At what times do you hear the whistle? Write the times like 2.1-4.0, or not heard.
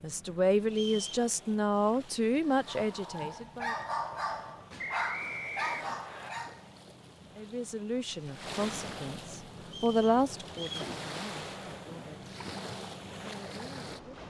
0.7-1.2, 4.8-6.3, 9.7-10.9.